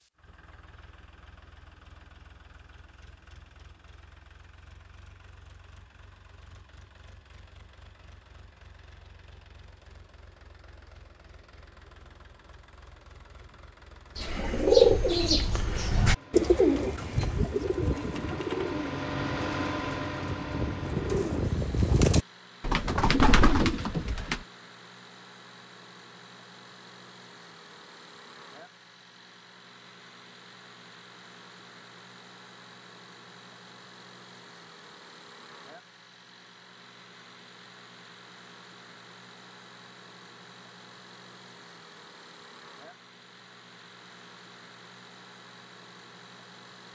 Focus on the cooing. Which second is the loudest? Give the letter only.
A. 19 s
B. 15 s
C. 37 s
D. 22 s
B.